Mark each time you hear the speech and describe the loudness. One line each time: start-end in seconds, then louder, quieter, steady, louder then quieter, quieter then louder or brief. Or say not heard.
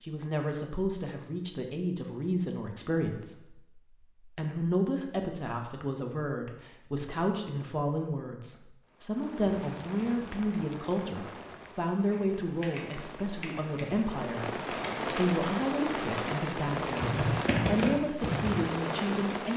0.0-19.5 steady.